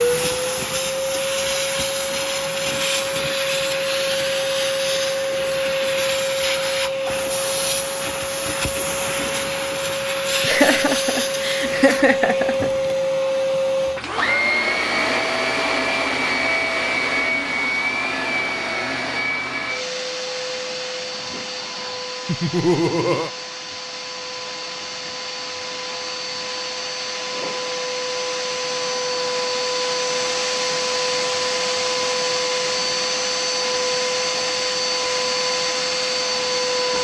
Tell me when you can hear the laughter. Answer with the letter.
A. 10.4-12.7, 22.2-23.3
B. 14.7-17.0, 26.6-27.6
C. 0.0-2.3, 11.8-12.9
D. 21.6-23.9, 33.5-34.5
A.